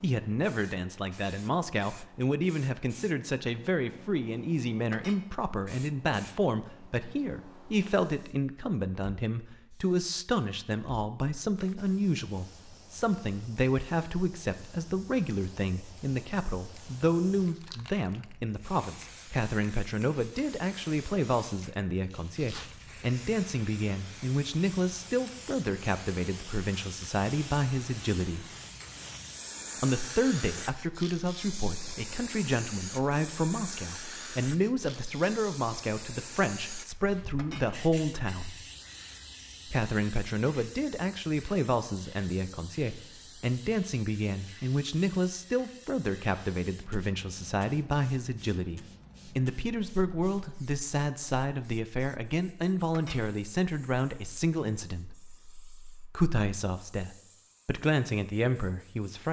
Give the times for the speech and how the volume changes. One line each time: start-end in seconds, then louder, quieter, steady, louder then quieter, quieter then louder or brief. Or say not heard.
0.0-28.6 steady
29.8-38.6 steady
39.6-59.2 steady.